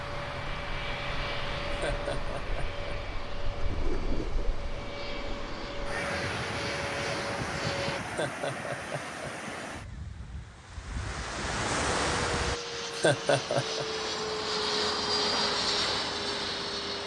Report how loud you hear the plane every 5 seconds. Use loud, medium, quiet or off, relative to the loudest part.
medium, medium, loud, loud.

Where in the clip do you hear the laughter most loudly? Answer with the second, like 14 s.
13 s.